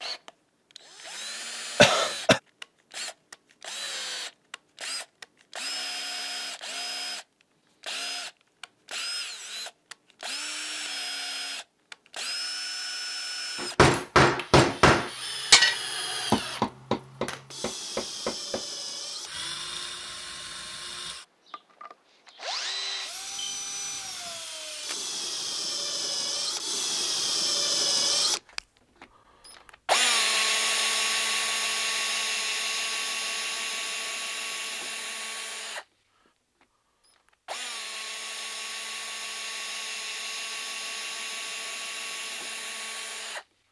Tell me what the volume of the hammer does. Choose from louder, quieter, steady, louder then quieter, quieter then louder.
quieter.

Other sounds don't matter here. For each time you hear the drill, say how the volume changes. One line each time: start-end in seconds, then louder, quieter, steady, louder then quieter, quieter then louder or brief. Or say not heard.
0.0-28.6 louder
29.9-35.9 quieter
37.5-43.5 steady.